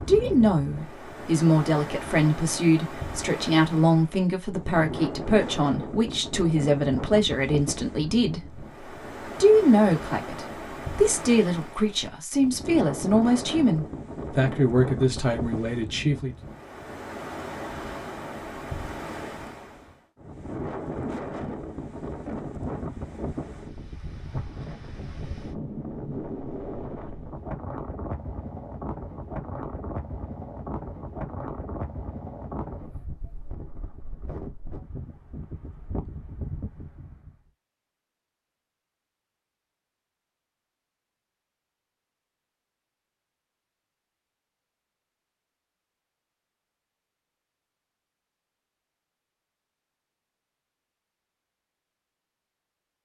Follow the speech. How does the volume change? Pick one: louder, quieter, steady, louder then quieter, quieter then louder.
steady.